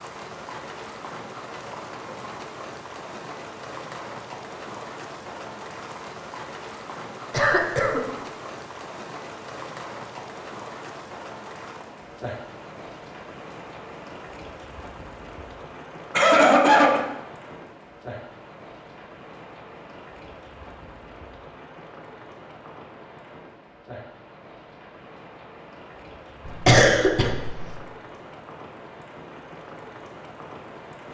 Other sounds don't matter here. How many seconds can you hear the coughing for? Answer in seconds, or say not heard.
3 s.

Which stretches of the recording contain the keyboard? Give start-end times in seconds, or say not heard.
not heard.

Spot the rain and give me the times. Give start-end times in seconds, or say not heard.
0.0-31.0.